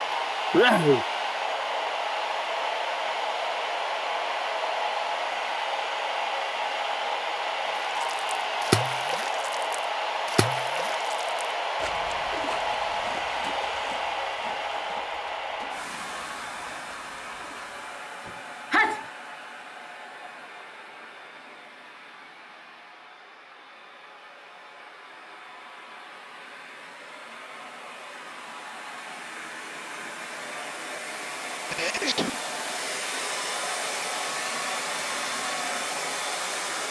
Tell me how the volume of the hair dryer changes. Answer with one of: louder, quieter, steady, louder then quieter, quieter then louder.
quieter then louder.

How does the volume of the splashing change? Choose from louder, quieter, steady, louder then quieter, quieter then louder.
quieter.